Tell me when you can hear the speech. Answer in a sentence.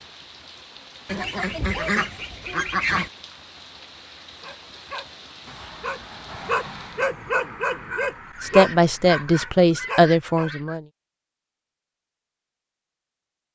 The speech can be heard from 8.4 to 10.8 s.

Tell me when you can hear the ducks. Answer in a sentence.
You can hear the ducks from 1.1 to 3.1 s and from 8.2 to 10.8 s.